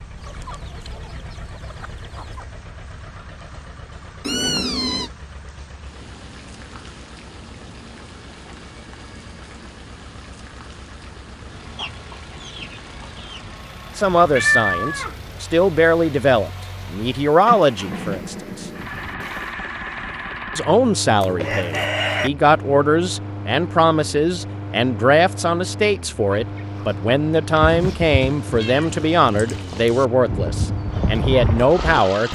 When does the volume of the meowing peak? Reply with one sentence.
The loudest moment of the meowing is at 15 seconds.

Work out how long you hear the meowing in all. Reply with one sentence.
You can hear the meowing for 3 seconds altogether.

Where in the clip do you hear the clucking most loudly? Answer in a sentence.
The loudest moment of the clucking is at 22 seconds.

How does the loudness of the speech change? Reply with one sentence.
The volume of the speech stays about the same.